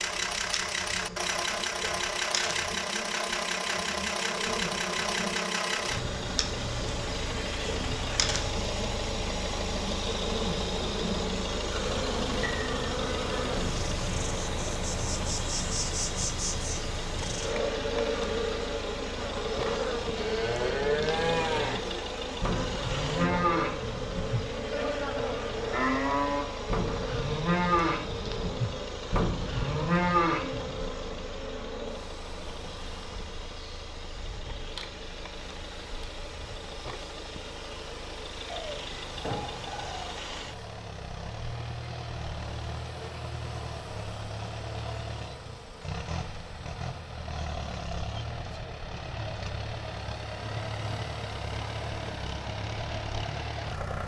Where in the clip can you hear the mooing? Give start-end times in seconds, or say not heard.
20.1-30.9.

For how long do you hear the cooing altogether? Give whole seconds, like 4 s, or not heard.
2 s.